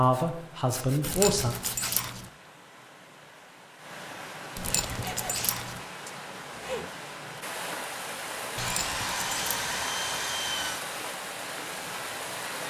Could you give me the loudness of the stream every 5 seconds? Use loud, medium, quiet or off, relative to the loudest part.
medium, loud, loud.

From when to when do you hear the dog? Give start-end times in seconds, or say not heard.
1.0-2.3, 4.5-5.8, 8.6-9.8.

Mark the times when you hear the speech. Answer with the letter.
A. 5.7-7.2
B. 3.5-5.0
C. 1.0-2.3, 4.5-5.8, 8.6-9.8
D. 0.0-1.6
D.